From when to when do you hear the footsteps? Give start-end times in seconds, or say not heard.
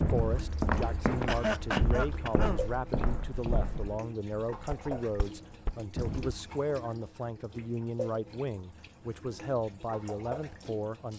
0.0-6.4.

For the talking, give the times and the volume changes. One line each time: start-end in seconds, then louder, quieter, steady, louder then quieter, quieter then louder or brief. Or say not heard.
0.1-11.1 steady.